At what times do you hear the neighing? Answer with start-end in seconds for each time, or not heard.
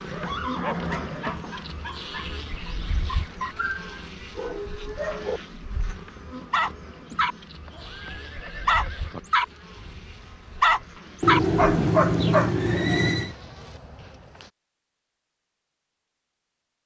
0.1-1.6, 7.7-9.2, 11.2-13.3.